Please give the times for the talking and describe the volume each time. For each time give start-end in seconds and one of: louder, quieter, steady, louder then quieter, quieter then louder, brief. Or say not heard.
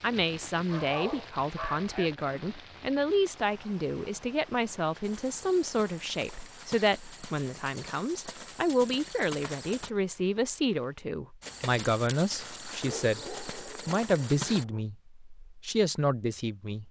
0.0-16.8 steady.